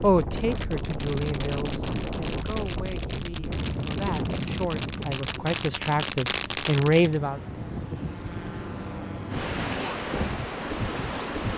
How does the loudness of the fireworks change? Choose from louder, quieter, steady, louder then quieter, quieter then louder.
louder.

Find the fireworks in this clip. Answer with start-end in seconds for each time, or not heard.
0.0-7.2.